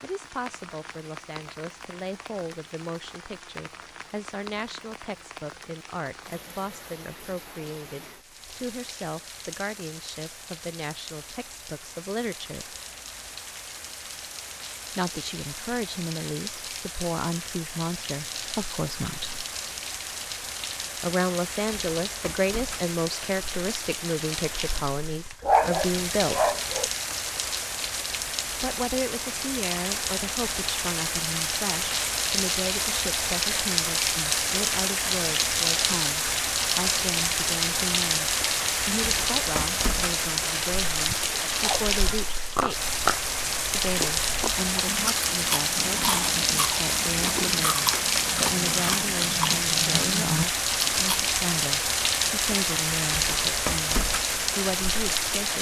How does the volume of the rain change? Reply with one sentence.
The volume of the rain goes up.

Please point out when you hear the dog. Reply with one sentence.
You can hear the dog from 25.4 to 26.9 s.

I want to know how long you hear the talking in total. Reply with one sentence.
You can hear the talking for 49 seconds altogether.